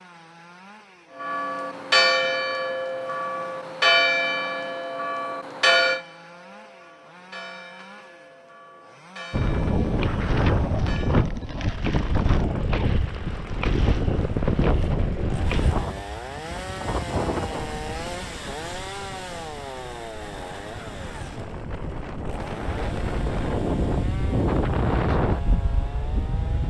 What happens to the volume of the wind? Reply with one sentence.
The loudness of the wind goes down, then up.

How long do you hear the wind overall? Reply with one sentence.
The wind can be heard for 17 seconds in total.